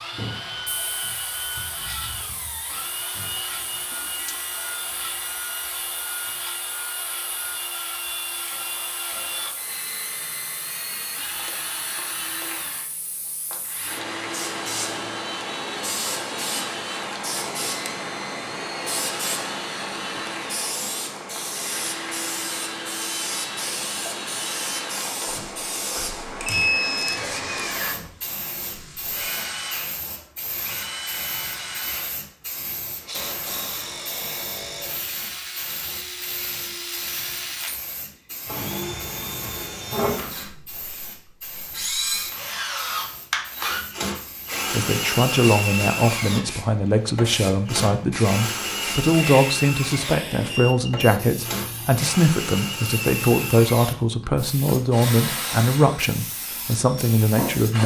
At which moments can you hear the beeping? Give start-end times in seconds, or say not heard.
3.9-5.7, 26.4-27.2, 50.5-51.2.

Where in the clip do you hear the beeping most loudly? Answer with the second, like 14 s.
27 s.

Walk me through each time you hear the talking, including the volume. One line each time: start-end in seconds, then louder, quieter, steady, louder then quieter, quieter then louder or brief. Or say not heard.
44.7-57.8 steady.